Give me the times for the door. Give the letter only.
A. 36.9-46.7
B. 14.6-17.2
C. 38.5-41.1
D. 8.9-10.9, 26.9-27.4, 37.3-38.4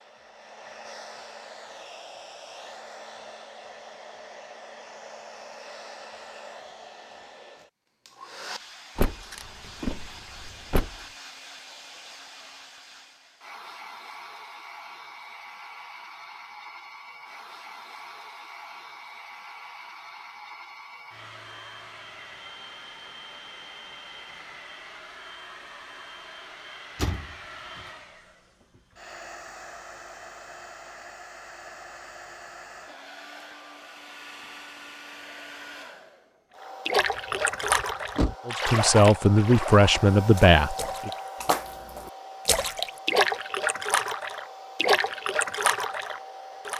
D.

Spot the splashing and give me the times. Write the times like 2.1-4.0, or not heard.
36.9-46.7.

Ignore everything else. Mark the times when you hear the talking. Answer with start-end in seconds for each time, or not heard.
38.5-41.1.